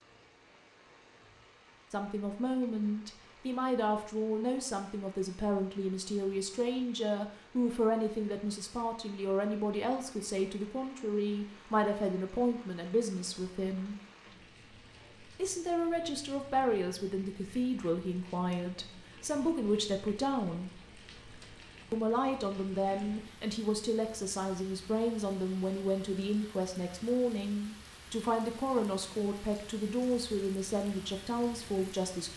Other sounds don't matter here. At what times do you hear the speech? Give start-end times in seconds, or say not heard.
1.9-13.9, 15.3-20.7, 21.9-32.3.